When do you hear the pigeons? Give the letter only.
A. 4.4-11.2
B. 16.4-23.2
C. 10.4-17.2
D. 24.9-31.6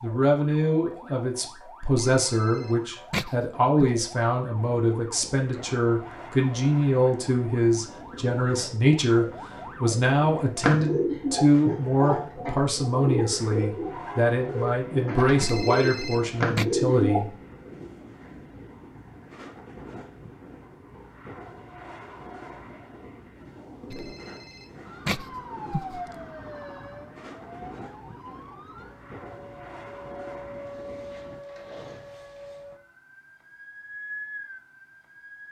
C.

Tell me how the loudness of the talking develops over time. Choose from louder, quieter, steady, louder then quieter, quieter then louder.
steady.